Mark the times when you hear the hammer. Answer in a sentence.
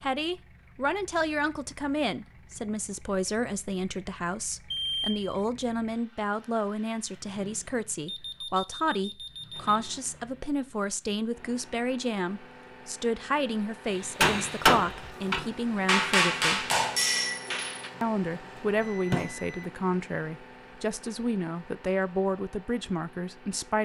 The hammer can be heard from 13.9 to 19.3 s.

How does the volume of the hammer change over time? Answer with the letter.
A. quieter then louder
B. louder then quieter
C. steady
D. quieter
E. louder
D.